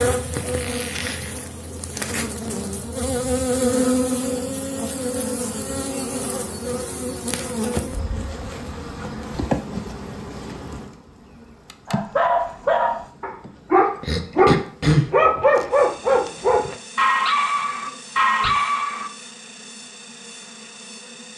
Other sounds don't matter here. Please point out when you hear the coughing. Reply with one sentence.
You can hear the coughing from 14.0 to 15.1 s.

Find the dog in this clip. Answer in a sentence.
You can hear the dog from 11.8 to 19.1 s.